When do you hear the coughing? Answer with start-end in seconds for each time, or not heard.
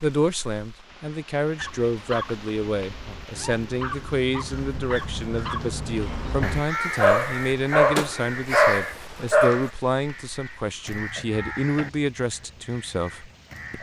not heard.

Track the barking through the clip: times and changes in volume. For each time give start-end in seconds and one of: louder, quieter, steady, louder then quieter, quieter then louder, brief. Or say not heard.
1.6-9.7 louder.